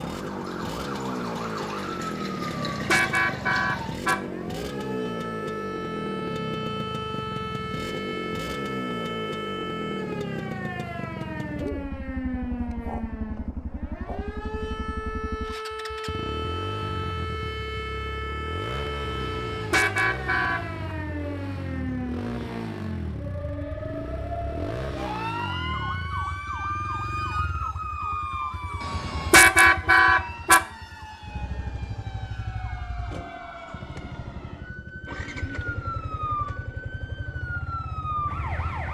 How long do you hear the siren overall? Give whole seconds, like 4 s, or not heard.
39 s.